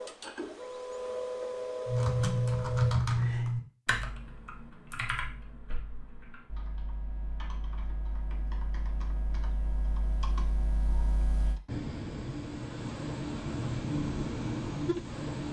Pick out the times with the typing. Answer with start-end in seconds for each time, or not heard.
1.9-11.6.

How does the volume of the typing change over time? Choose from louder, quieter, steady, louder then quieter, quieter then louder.
quieter then louder.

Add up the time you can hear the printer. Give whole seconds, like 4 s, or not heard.
7 s.